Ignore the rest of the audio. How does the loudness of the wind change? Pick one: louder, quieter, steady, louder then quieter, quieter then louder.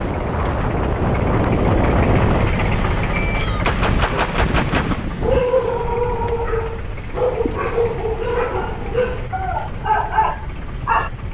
quieter.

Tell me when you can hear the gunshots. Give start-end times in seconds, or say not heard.
3.2-5.0.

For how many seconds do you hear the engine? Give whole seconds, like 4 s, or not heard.
11 s.